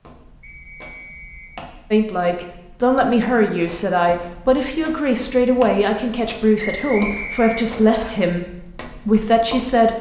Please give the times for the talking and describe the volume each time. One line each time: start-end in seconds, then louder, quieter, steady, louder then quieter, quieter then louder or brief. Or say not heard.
1.9-9.9 steady.